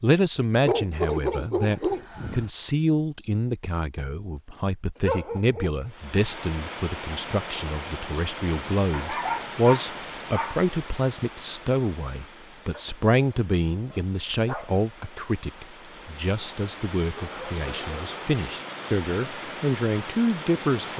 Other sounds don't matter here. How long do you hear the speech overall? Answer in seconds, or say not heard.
21 s.